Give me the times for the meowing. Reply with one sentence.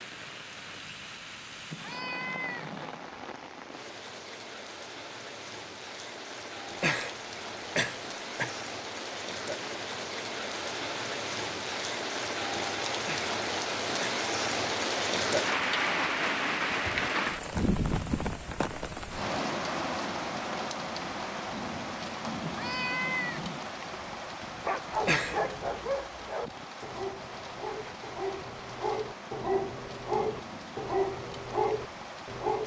You can hear the meowing from 1.7 to 3.1 s and from 22.4 to 23.6 s.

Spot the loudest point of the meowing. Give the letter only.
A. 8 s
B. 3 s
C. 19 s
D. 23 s
D.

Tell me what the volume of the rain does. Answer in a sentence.
The volume of the rain goes up, then down.